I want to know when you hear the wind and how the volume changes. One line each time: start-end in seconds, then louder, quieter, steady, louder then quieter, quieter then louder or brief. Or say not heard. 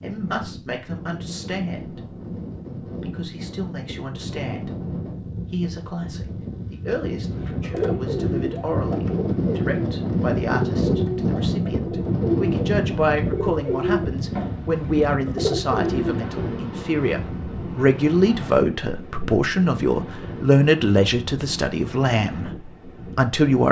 0.0-23.6 louder then quieter.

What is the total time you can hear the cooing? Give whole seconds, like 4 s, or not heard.
9 s.